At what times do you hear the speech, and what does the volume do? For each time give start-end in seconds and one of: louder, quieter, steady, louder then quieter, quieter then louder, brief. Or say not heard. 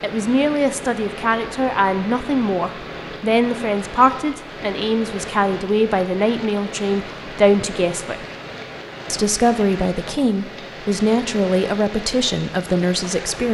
0.0-8.2 steady
9.1-13.4 steady.